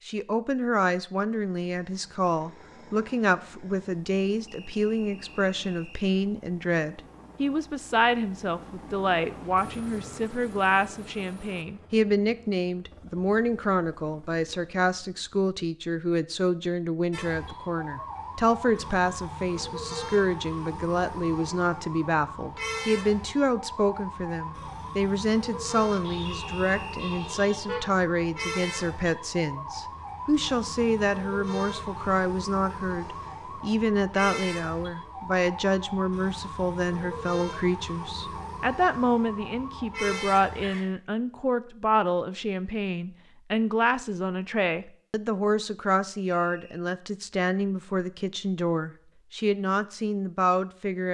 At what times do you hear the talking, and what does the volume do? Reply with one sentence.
You can hear the talking from 0.1 to 51.0 s, at a steady volume.